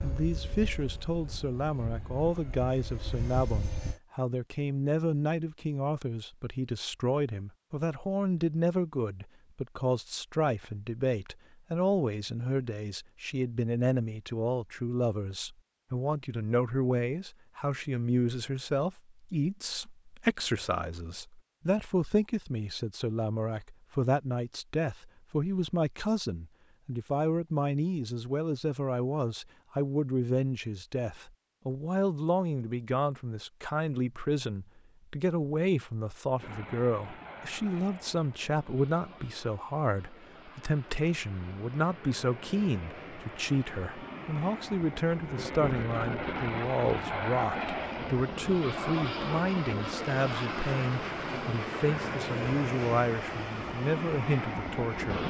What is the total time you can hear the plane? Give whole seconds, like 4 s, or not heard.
23 s.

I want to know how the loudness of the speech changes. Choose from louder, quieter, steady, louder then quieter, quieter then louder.
steady.